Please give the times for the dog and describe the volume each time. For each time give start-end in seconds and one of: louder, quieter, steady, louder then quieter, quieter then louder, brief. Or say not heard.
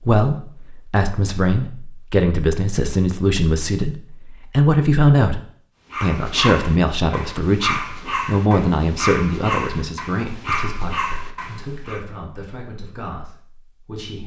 5.9-12.0 steady.